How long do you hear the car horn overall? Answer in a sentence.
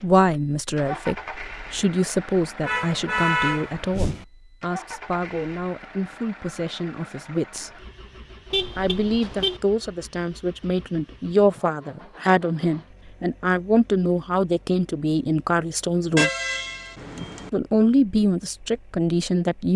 You can hear the car horn for 4 seconds altogether.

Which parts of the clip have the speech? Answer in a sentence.
You can hear the speech from 0.0 to 7.8 s, from 8.8 to 16.3 s and from 17.5 to 19.7 s.